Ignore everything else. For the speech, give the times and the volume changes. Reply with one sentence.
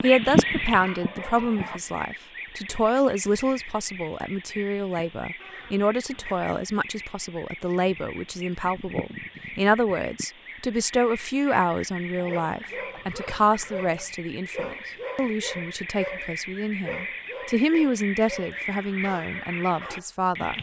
You can hear the speech from 0.0 to 20.5 s, at a steady volume.